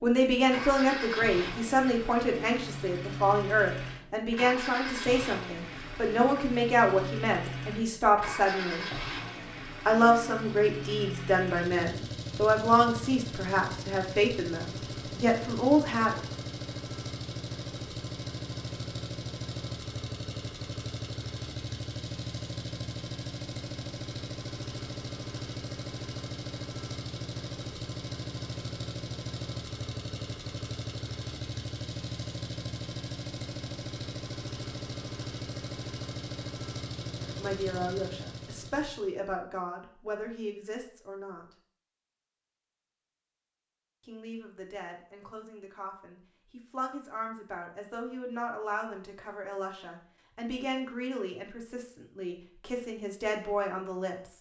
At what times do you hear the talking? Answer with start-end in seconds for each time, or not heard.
0.0-8.8, 9.8-16.1, 37.2-41.5, 44.0-54.3.